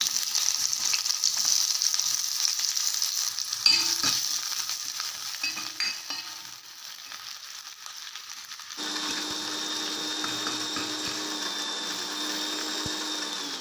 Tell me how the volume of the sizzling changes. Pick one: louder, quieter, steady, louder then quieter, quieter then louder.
quieter.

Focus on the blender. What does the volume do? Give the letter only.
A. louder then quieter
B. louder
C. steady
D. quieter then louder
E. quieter
C.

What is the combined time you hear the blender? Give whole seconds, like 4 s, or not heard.
5 s.